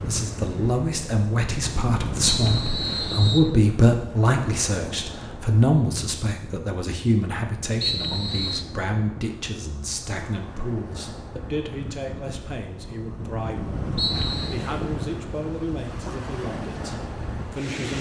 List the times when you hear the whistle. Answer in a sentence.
The whistle can be heard from 2.2 to 3.5 s, from 7.8 to 8.7 s and from 13.9 to 14.6 s.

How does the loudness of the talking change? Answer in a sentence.
The volume of the talking goes down.